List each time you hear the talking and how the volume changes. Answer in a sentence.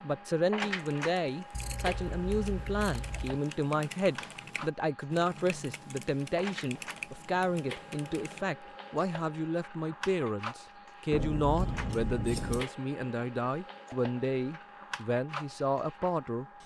The talking can be heard from 0.0 to 16.4 s, at a steady volume.